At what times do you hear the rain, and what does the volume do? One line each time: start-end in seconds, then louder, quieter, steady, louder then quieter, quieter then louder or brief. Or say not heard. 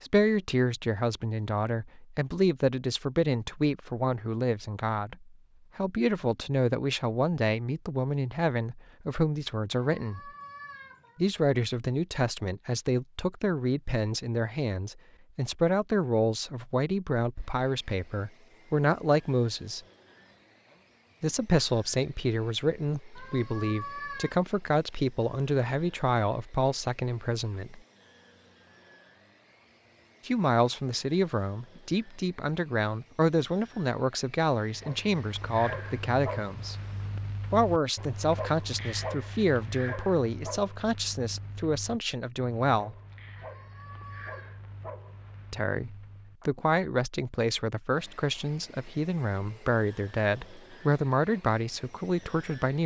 not heard.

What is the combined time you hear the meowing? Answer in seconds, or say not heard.
4 s.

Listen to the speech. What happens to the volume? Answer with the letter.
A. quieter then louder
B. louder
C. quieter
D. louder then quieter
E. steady
E.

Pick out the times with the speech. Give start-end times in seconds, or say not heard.
0.0-10.3, 11.2-19.8, 21.2-27.8, 30.2-36.8, 37.5-43.0, 45.5-52.8.